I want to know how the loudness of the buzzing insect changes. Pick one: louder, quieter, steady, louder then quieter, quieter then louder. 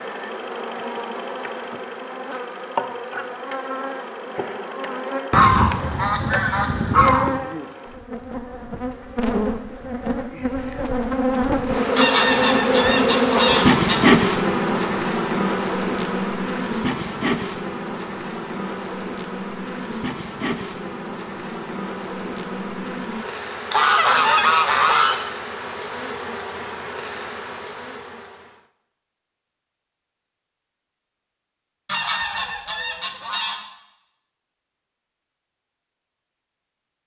louder then quieter.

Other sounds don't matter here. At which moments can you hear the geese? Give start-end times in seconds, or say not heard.
5.3-7.4, 11.9-13.9, 23.7-25.2, 31.9-33.6.